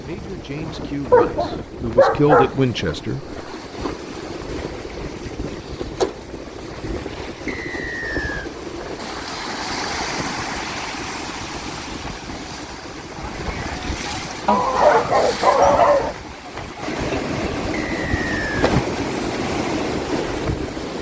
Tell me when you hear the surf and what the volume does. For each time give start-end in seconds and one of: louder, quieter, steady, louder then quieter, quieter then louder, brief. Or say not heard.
0.0-20.9 louder.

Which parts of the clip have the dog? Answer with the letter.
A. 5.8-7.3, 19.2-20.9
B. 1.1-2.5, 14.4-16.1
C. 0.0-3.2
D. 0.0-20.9
B.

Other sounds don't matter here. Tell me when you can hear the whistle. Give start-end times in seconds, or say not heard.
7.5-8.5, 17.7-18.8.